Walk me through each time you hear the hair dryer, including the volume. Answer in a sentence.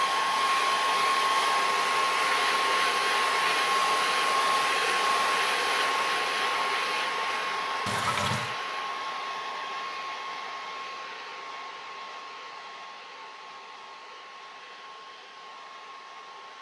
The hair dryer can be heard from 0.0 to 16.5 s, getting quieter.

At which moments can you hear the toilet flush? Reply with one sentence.
You can hear the toilet flush from 7.8 to 8.6 s.